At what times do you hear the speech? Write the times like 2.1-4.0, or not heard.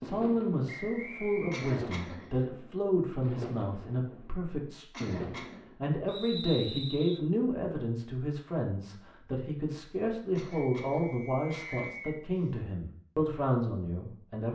0.0-14.5.